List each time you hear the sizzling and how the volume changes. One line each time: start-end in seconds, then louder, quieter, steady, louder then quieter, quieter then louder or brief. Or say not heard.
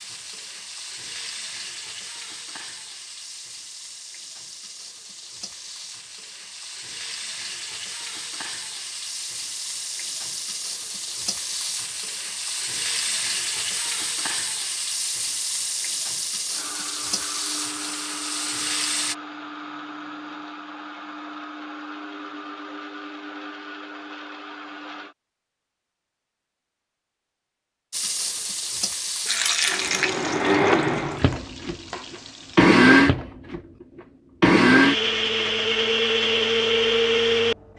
0.0-19.1 louder
27.9-32.8 louder then quieter.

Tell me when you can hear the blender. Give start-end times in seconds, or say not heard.
16.5-25.1, 29.6-37.5.